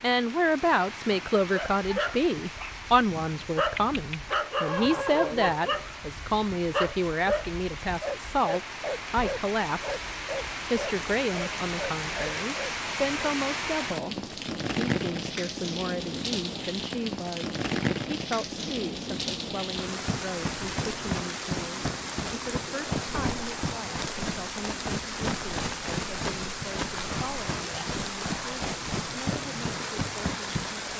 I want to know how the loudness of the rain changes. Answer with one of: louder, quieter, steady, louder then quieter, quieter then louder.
louder.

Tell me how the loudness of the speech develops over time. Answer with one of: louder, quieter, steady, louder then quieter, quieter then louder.
quieter.